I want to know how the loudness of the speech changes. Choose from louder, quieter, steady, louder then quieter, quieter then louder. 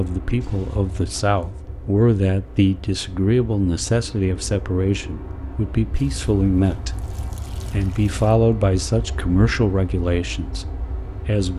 steady.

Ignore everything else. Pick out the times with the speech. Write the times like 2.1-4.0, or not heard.
0.0-11.5.